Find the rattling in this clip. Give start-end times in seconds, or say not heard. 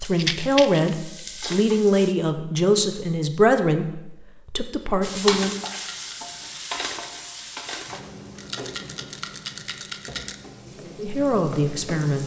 0.1-0.9, 5.5-6.2, 8.3-10.3.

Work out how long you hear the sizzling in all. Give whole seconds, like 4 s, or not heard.
9 s.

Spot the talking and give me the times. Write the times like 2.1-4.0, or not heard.
0.0-5.5, 10.6-12.2.